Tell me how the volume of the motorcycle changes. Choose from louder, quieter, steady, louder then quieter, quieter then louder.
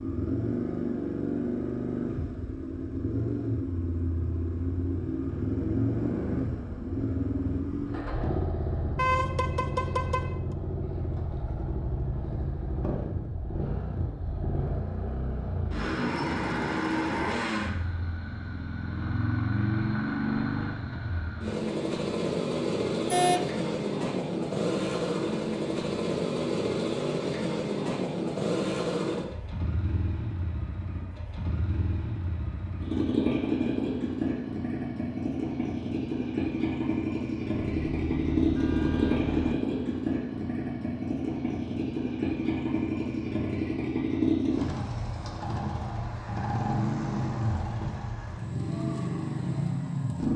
steady.